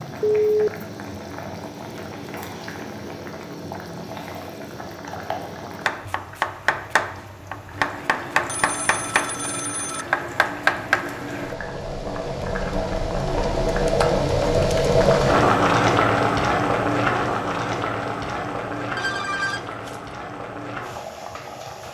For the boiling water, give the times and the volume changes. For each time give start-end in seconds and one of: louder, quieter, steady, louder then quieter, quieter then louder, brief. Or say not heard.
0.0-21.8 louder then quieter.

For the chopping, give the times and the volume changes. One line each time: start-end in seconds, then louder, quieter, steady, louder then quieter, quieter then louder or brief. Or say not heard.
5.8-11.1 steady.